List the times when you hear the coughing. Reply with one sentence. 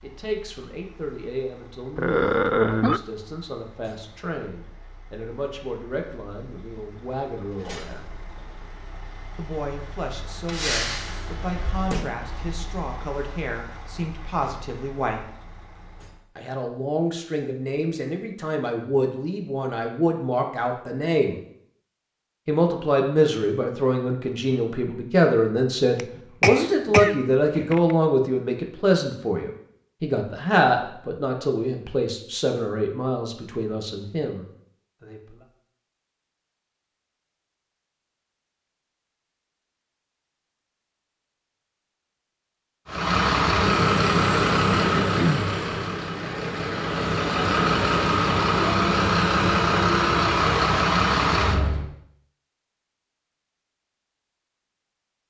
The coughing can be heard from 1.9 to 3.0 s, from 25.9 to 27.9 s and from 44.7 to 45.5 s.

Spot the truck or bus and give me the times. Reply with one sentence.
You can hear the truck or bus from 0.0 to 16.2 s and from 42.9 to 51.9 s.